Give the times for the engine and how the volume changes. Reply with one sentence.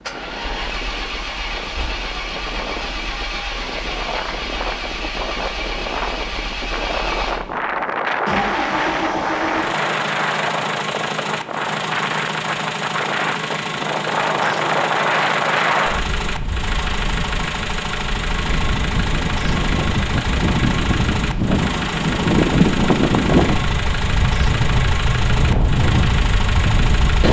The engine can be heard from 0.0 to 27.2 s, at a steady volume.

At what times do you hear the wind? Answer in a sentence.
The wind can be heard from 0.0 to 27.2 s.